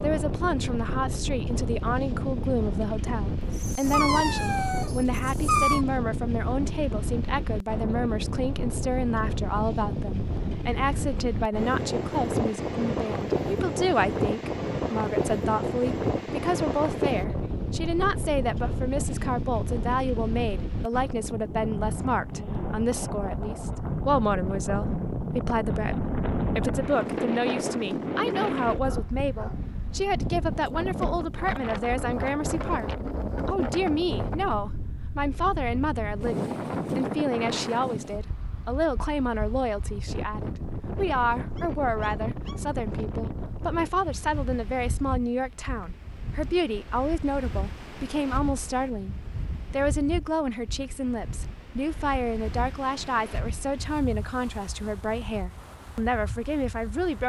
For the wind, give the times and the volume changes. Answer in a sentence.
You can hear the wind from 0.0 to 57.2 s, getting quieter.